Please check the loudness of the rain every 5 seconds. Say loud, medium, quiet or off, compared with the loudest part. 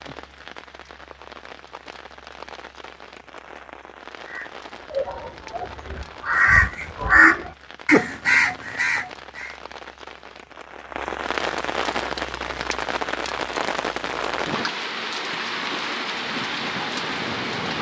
quiet, quiet, loud, loud.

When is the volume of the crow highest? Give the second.
7 s.